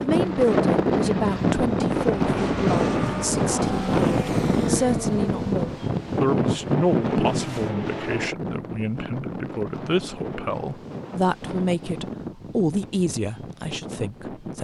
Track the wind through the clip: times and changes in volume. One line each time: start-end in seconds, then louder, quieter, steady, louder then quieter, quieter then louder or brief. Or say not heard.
0.0-14.5 quieter.